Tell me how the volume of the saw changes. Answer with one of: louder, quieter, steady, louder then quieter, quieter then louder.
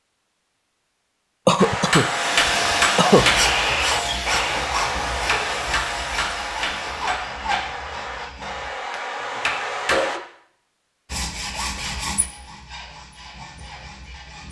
quieter.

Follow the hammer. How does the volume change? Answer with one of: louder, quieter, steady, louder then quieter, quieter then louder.
quieter.